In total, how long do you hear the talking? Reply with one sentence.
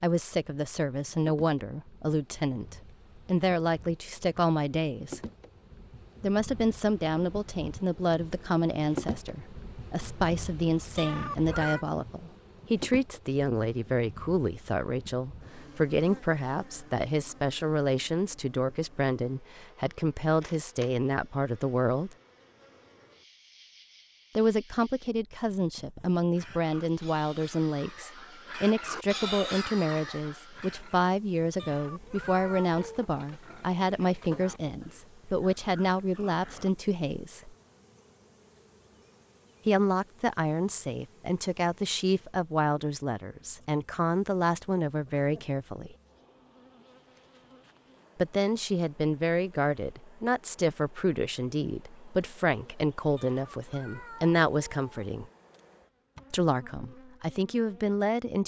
The talking can be heard for 50 seconds in total.